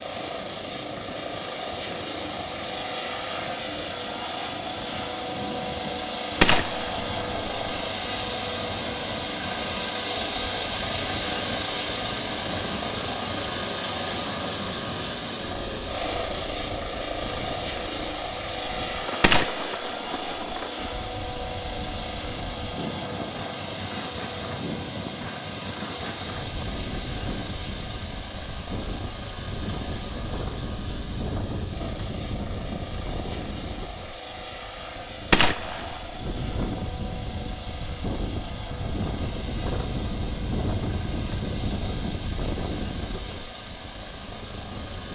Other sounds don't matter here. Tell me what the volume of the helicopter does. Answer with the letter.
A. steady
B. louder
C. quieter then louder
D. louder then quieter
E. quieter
E.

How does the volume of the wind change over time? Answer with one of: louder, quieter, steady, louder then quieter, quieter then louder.
louder.